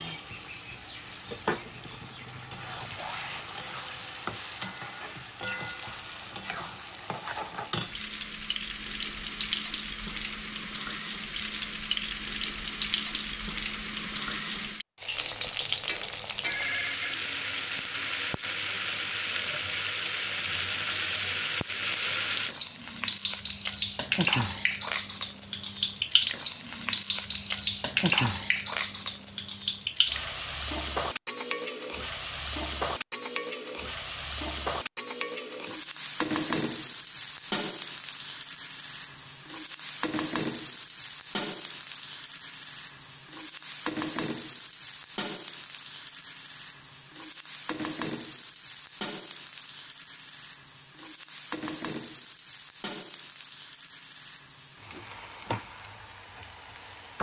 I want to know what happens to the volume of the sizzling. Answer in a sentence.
The volume of the sizzling goes up, then down.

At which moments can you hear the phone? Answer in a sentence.
You can hear the phone from 16.3 to 17.1 s.